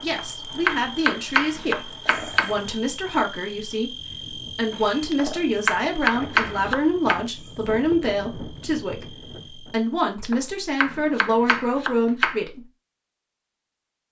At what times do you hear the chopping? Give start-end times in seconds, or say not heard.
0.1-2.5, 5.1-7.2, 10.2-12.4.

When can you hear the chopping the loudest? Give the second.
6 s.